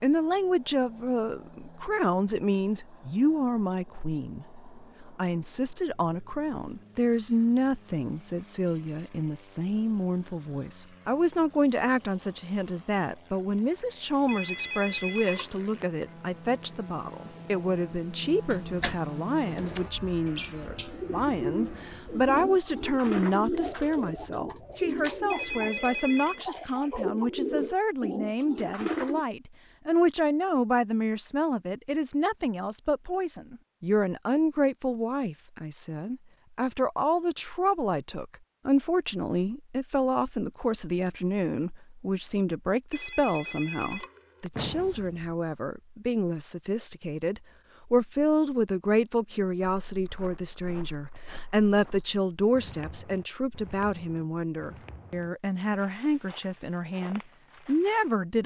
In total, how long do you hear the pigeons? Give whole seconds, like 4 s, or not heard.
10 s.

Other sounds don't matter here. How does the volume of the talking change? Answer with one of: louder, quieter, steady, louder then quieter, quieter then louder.
steady.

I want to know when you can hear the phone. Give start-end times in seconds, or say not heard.
14.2-16.1, 25.3-26.4, 42.9-44.7.